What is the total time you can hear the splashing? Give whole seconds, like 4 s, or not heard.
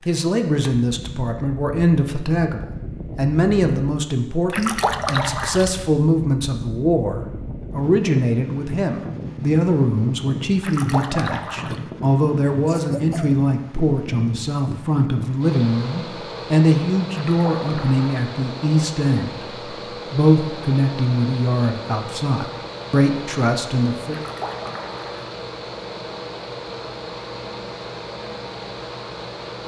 5 s.